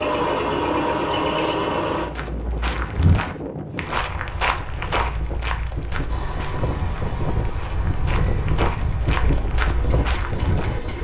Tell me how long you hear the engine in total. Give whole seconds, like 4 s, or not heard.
7 s.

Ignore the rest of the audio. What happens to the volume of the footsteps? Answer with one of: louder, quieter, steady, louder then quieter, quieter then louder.
quieter then louder.